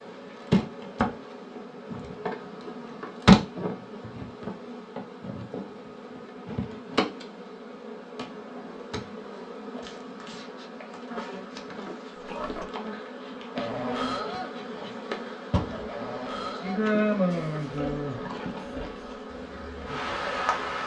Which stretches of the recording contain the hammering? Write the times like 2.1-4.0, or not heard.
not heard.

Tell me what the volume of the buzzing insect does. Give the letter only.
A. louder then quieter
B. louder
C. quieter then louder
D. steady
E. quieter
C.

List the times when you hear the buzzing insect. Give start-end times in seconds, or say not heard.
0.0-20.8.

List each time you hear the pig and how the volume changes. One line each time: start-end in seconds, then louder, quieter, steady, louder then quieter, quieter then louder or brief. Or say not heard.
12.2-20.6 quieter.